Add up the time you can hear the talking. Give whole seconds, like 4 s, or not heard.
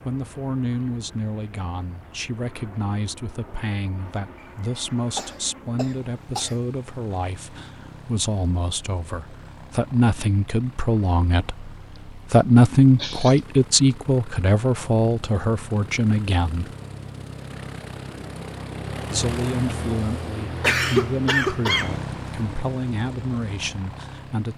22 s.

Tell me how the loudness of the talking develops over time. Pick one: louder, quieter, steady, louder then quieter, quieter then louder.
louder then quieter.